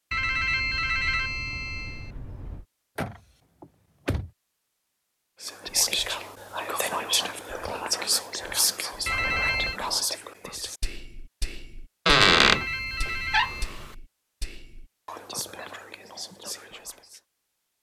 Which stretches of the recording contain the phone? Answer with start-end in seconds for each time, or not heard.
0.1-2.6, 9.1-9.8, 12.4-13.7.